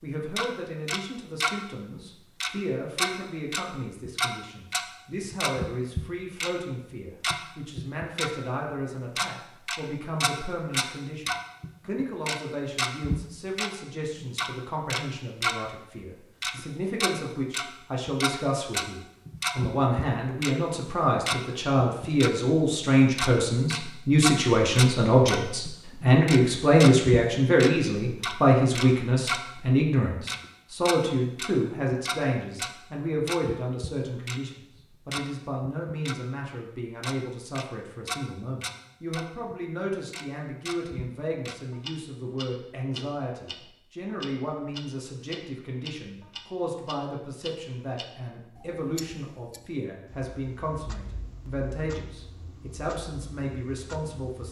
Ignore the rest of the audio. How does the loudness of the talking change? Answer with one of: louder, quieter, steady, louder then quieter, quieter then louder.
louder then quieter.